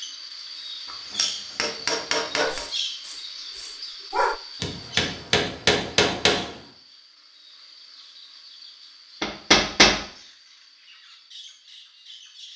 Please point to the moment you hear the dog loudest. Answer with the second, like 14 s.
4 s.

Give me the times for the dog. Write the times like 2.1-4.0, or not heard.
2.4-4.4.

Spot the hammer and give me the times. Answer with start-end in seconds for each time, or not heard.
0.9-2.6, 4.6-6.5, 9.2-9.9.